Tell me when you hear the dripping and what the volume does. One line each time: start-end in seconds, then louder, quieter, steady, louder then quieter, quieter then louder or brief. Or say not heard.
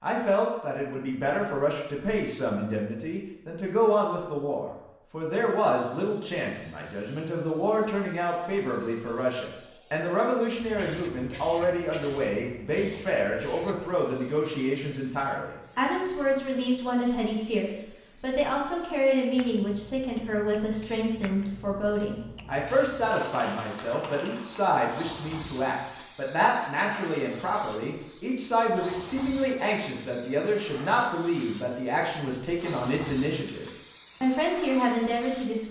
not heard.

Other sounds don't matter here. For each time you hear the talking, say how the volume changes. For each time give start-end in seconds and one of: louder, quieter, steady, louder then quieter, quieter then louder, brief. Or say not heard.
0.0-35.6 steady.